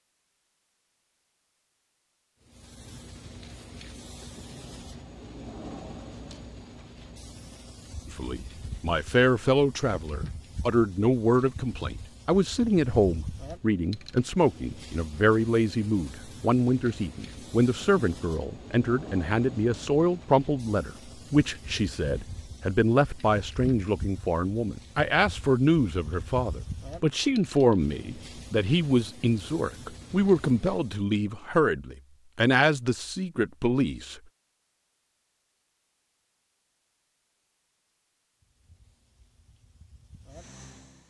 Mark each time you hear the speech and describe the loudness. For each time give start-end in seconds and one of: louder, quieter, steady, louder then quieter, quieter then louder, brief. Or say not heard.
8.1-34.2 steady.